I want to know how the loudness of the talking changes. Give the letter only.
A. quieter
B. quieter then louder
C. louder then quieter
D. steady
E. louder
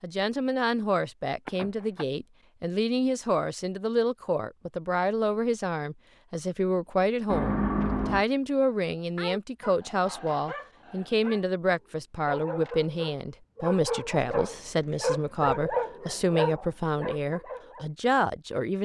D.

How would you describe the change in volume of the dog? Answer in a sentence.
The volume of the dog goes up, then down.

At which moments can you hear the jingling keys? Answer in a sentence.
The jingling keys can be heard from 1.4 to 2.0 s, from 7.3 to 8.2 s and from 14.1 to 15.8 s.